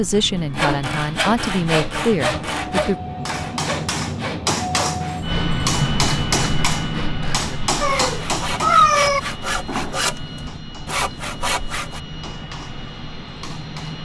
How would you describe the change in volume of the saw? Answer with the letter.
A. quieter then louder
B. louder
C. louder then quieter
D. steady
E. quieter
A.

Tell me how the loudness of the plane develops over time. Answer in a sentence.
The loudness of the plane goes up, then down.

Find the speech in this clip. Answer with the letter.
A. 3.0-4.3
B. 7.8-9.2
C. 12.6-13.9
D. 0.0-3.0
D.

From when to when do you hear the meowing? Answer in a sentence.
The meowing can be heard from 7.8 to 9.2 s.